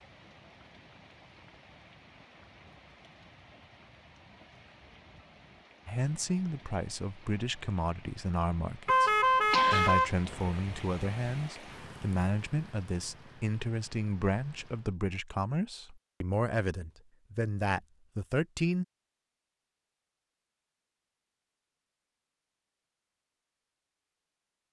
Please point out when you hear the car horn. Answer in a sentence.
The car horn can be heard from 8.8 to 10.6 s.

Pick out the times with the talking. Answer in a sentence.
You can hear the talking from 5.8 to 18.9 s.